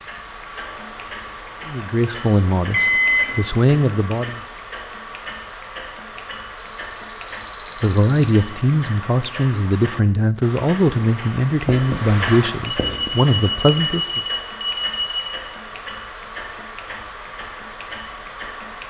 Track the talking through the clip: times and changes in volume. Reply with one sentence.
You can hear the talking briefly from 1.6 to 4.4 s; and from 7.8 to 14.2 s, at a steady volume.